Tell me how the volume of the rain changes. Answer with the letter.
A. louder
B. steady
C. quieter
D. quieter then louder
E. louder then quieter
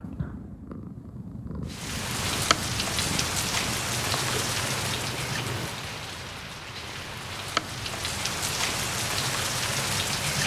D.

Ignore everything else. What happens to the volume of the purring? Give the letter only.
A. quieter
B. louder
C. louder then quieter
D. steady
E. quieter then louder
D.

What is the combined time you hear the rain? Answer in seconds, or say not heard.
9 s.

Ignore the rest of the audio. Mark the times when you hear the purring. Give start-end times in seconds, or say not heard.
0.0-5.7.